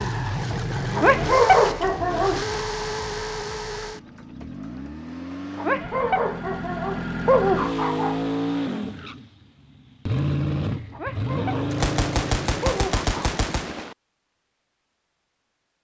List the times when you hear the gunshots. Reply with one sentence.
You can hear the gunshots from 11.7 to 13.9 s.